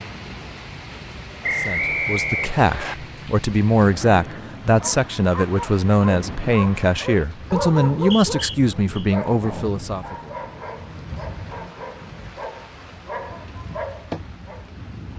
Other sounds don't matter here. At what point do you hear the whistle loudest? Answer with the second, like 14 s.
2 s.